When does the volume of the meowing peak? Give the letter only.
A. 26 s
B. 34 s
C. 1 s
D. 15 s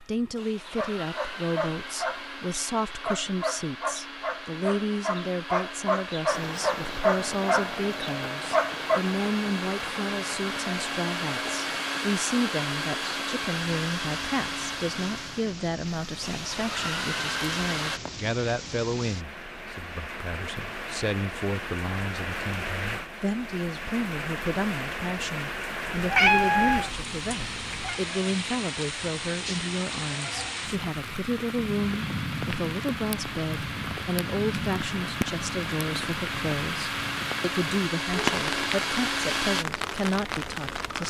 A.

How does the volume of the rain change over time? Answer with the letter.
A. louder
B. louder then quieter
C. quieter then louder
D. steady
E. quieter
A.